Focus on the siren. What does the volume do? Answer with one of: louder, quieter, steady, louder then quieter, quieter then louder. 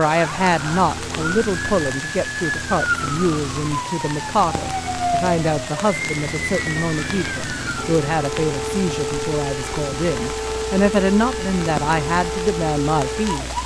steady.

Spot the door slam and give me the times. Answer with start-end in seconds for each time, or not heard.
not heard.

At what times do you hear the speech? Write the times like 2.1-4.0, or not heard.
0.0-13.6.